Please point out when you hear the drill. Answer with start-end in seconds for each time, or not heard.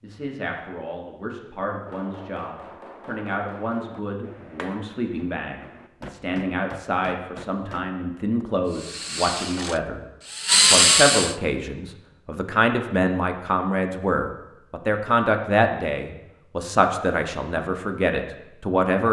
8.7-11.3.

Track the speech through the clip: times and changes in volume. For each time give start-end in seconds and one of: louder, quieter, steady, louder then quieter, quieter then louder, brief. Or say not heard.
0.0-19.0 louder.